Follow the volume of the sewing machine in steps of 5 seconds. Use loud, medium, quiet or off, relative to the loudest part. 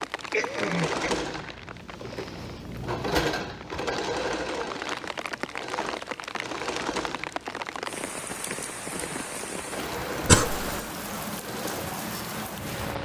loud, medium, medium.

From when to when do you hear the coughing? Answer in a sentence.
You can hear the coughing from 0.3 to 1.2 s and from 10.2 to 10.8 s.